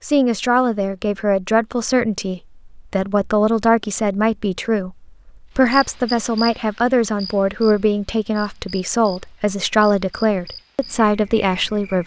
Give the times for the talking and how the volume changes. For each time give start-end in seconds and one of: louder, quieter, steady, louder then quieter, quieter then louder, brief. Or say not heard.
0.0-12.0 steady.